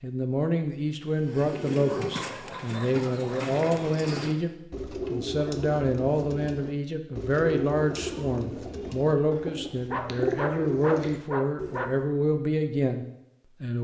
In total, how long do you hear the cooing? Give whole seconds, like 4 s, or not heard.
11 s.